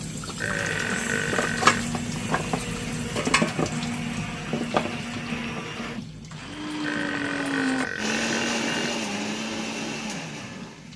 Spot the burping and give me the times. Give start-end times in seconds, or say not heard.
0.4-1.9, 6.8-8.9.